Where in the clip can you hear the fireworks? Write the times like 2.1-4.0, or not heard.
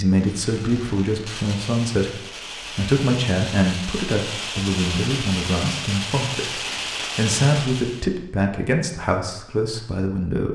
0.1-8.1.